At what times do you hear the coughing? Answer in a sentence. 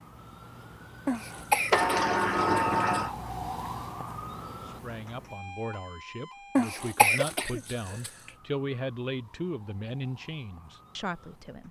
The coughing can be heard from 1.1 to 3.0 s and from 6.5 to 8.1 s.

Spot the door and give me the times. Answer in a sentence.
You can hear the door from 1.7 to 3.1 s.